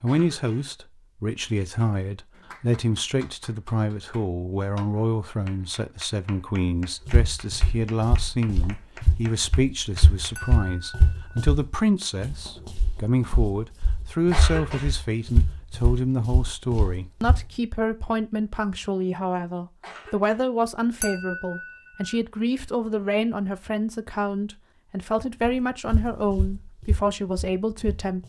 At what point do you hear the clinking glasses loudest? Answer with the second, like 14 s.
21 s.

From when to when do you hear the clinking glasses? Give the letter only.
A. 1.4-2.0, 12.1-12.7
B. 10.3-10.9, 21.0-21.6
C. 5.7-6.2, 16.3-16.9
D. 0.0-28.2
B.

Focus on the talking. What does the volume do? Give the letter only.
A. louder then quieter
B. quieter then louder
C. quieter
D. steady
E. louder
D.